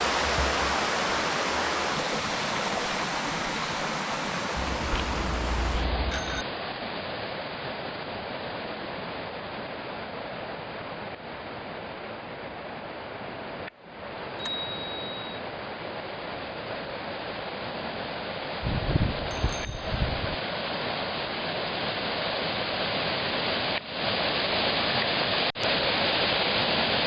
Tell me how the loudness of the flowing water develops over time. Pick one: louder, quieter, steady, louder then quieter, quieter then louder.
quieter then louder.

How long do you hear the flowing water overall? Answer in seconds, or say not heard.
27 s.